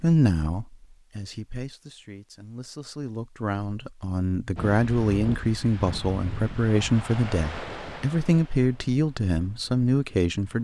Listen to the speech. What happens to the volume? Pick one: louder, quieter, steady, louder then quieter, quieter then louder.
louder.